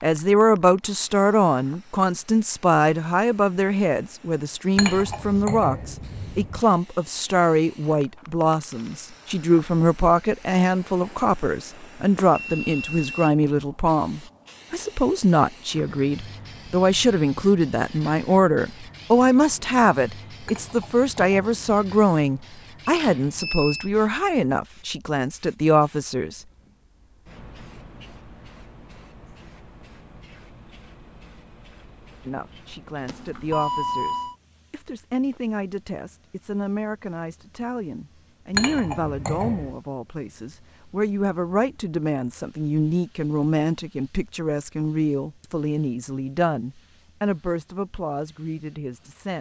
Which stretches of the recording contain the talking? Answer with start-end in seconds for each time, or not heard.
0.0-26.4, 32.2-49.3.